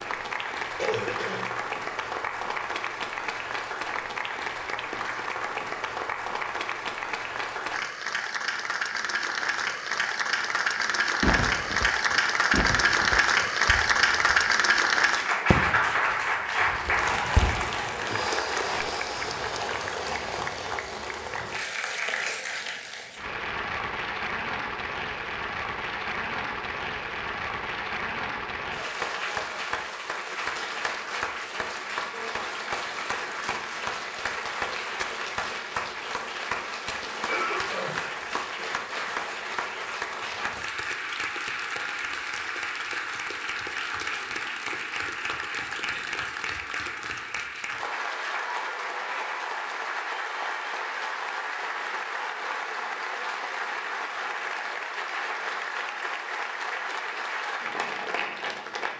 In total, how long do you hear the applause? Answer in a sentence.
The applause can be heard for 59 seconds in total.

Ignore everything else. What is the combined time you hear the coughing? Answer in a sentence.
The coughing can be heard for 2 seconds in total.